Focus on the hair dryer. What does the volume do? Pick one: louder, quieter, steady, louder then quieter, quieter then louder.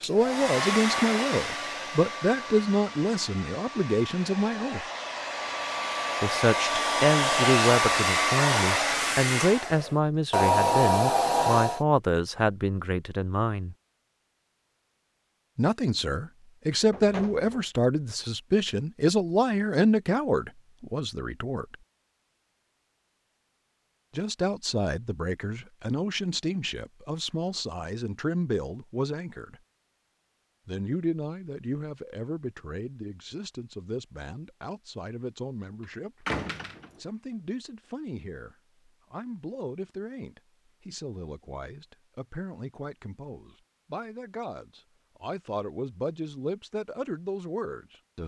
quieter then louder.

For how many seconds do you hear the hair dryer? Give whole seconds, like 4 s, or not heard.
12 s.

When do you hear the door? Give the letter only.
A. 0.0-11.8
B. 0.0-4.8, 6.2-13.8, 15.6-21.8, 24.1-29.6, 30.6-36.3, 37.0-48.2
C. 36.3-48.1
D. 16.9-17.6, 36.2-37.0
D.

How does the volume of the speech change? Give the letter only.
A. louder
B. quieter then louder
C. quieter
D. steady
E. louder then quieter
C.